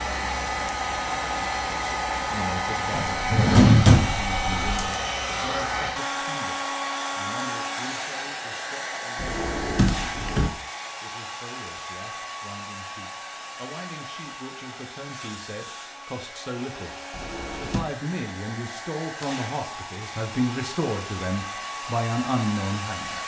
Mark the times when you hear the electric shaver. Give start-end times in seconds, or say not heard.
not heard.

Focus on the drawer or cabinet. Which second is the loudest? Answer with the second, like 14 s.
4 s.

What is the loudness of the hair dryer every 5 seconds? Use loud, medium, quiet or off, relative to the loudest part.
loud, loud, medium, medium, medium.